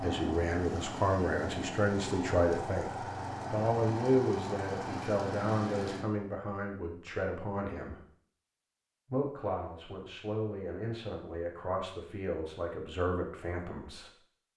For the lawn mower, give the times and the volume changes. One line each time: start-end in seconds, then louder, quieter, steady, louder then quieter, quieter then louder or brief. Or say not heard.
0.0-6.0 steady.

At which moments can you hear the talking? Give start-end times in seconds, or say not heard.
0.0-8.0, 9.1-14.1.